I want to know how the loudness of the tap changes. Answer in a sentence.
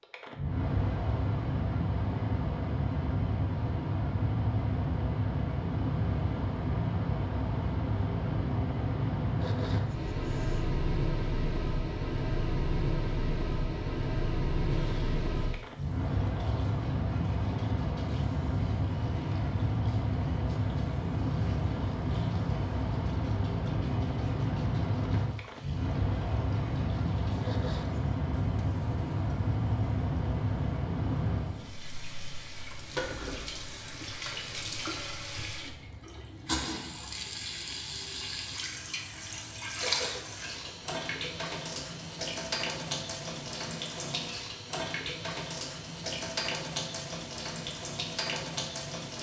The volume of the tap goes up.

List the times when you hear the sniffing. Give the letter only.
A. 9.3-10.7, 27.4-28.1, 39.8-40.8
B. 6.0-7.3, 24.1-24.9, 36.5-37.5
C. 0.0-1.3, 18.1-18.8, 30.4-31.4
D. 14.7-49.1
A.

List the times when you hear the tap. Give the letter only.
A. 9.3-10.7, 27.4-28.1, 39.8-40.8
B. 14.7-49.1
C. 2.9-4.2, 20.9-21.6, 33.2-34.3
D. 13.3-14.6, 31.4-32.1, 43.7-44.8
B.